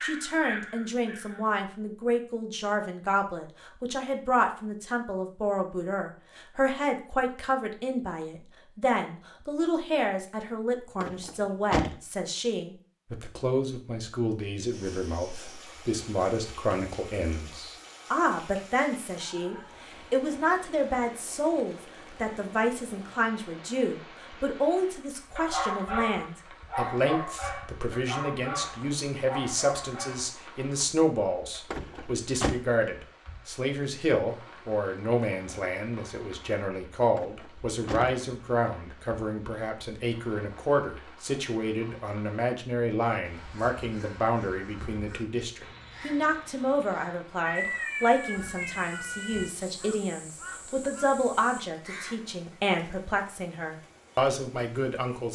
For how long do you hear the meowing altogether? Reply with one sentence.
The meowing can be heard for 2 seconds in total.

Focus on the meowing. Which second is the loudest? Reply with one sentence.
The loudest moment of the meowing is at 48 seconds.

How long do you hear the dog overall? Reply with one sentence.
The dog can be heard for 5 seconds in total.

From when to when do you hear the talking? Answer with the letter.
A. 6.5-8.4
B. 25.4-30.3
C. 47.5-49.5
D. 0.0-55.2
D.